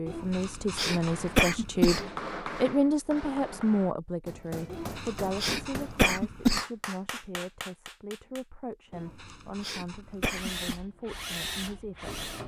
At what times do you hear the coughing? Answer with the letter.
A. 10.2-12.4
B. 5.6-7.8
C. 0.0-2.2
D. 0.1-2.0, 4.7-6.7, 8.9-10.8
D.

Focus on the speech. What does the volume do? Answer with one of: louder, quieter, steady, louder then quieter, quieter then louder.
quieter.